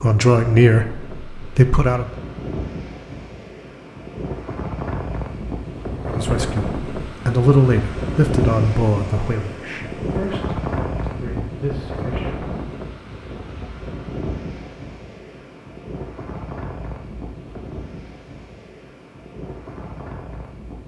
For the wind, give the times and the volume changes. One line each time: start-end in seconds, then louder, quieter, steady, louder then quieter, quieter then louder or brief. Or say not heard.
0.0-20.8 louder then quieter.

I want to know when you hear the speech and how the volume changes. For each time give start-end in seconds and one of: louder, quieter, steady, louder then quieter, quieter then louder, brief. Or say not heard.
0.0-2.0 brief
6.0-12.5 quieter.